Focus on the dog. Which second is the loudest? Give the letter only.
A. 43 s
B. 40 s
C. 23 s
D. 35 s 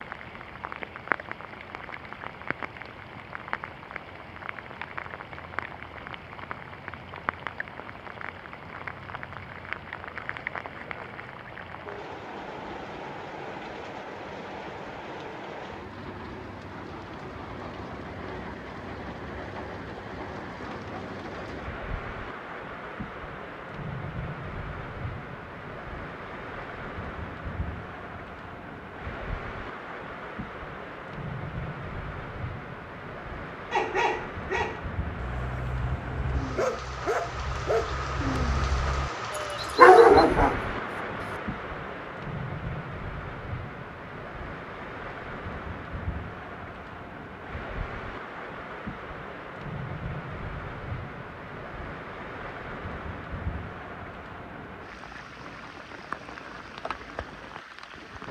B.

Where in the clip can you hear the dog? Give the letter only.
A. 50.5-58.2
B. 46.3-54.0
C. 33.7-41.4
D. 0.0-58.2
C.